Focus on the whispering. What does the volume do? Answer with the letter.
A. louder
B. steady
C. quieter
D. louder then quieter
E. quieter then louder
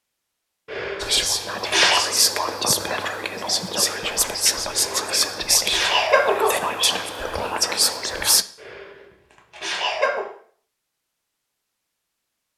B.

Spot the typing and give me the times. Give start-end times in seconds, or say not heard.
not heard.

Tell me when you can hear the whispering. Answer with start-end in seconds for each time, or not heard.
1.0-8.4.